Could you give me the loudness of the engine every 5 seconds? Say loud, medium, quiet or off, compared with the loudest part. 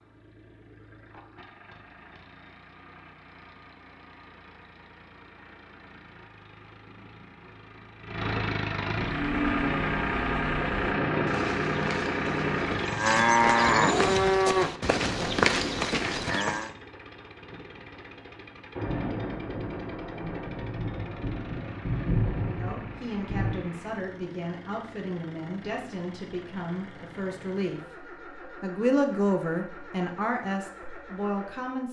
quiet, medium, loud, quiet, quiet, quiet, quiet.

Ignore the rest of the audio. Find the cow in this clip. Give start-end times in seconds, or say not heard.
9.1-16.7.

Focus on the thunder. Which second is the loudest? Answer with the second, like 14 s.
22 s.